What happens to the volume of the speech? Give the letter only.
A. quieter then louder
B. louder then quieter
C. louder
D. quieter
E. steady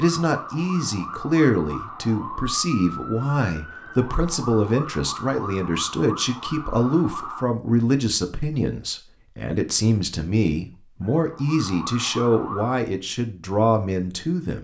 E.